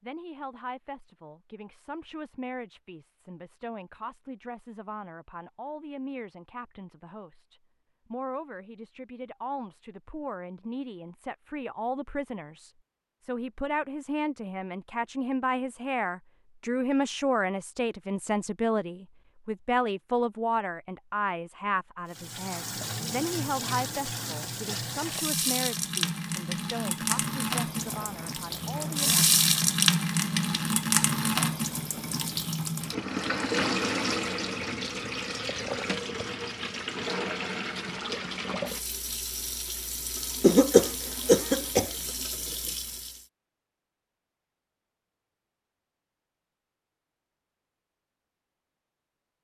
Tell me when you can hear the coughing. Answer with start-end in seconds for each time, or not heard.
40.4-41.9.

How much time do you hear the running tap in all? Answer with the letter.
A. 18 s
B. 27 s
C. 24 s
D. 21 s
D.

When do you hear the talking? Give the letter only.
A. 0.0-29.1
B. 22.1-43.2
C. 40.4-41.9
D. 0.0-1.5
A.